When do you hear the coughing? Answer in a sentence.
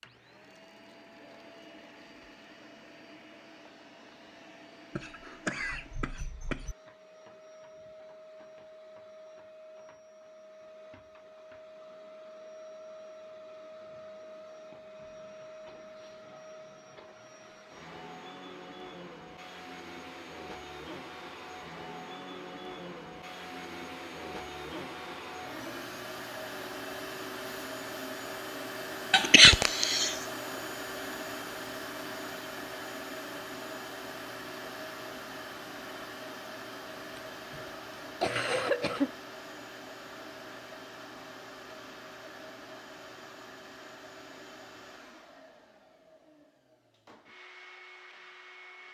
The coughing can be heard from 5.0 to 6.8 s, from 29.1 to 30.2 s and from 37.1 to 39.1 s.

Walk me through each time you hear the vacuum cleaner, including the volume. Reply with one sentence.
The vacuum cleaner can be heard from 0.0 to 48.8 s, getting louder then quieter.